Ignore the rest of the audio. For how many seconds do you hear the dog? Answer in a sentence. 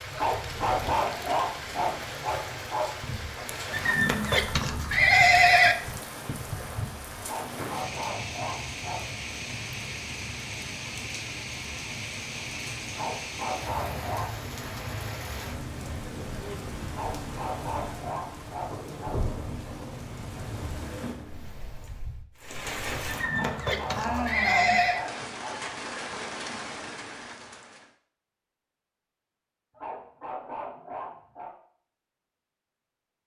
You can hear the dog for 13 seconds altogether.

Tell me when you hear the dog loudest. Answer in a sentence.
The loudest moment of the dog is at 1 second.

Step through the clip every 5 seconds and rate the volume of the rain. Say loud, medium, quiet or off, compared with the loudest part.
loud, loud, loud, loud, loud, loud, off.